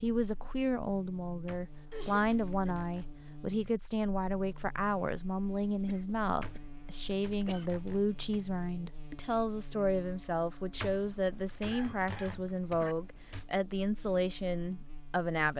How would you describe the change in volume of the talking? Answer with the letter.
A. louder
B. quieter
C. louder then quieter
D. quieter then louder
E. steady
E.